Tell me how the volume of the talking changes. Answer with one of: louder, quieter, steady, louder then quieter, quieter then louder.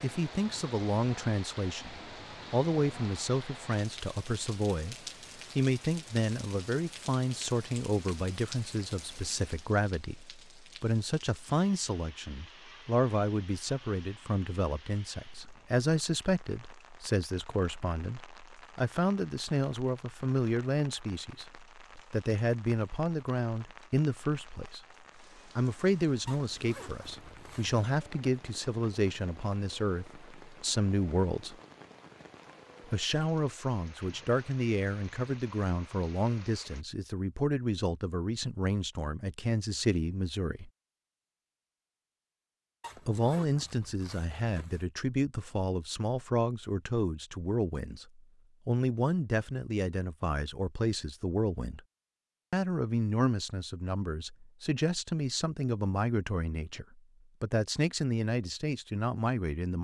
steady.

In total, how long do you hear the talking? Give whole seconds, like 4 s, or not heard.
54 s.